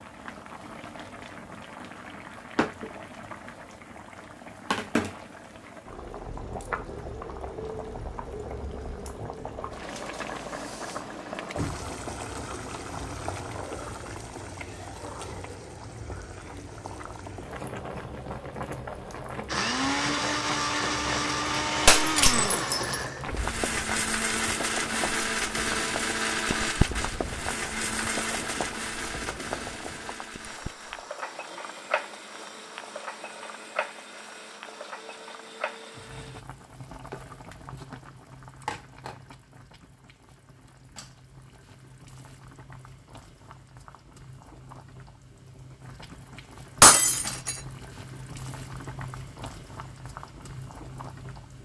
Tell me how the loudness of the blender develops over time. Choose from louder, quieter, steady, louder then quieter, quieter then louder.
quieter.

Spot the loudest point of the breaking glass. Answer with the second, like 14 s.
47 s.